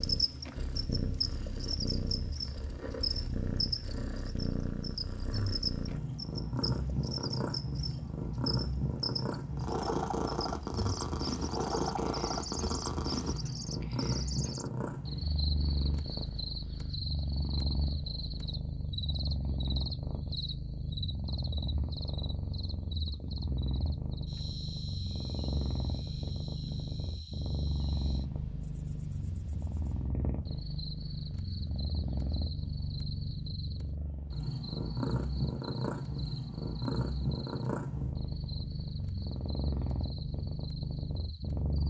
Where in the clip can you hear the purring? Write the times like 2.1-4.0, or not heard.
0.0-41.8.